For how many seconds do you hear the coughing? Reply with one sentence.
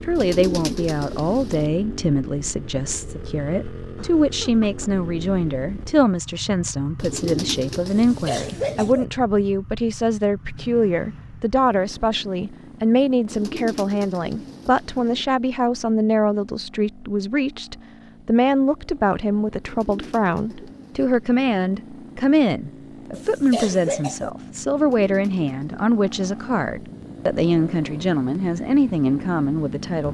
You can hear the coughing for 2 seconds altogether.